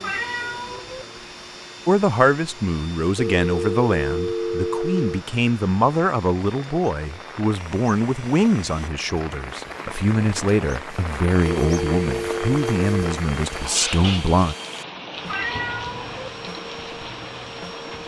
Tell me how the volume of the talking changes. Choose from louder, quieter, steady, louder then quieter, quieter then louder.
steady.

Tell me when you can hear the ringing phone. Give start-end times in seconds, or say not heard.
3.1-5.2, 11.6-13.2.